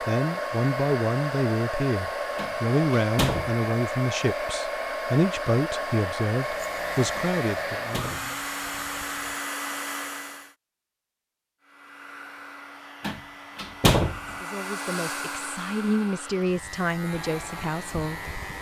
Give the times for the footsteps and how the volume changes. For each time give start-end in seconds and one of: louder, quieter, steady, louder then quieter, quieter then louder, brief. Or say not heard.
not heard.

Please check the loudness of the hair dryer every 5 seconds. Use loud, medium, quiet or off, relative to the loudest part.
loud, loud, medium, medium.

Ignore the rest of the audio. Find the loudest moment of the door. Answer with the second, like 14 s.
14 s.